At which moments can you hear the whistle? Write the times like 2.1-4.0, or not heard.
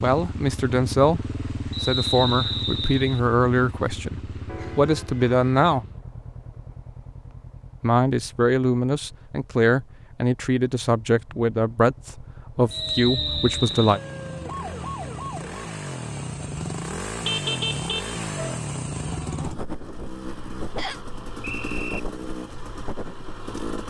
1.7-3.2, 12.7-14.0, 20.8-22.0.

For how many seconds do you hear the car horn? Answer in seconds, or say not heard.
3 s.